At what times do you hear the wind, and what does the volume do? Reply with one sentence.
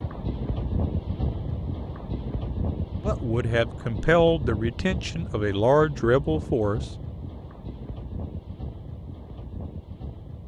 You can hear the wind from 0.0 to 10.4 s, getting quieter.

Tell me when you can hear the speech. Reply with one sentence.
You can hear the speech from 3.0 to 6.8 s.